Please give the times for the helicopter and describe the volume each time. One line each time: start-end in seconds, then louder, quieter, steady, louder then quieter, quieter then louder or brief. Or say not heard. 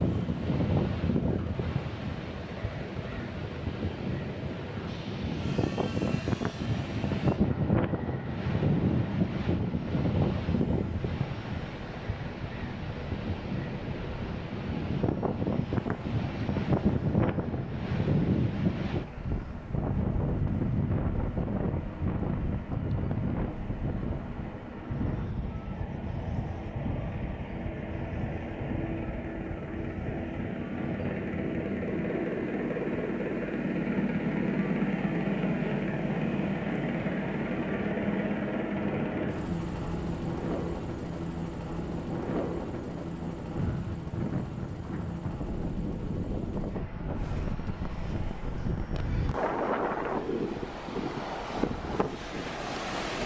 0.0-53.0 louder then quieter.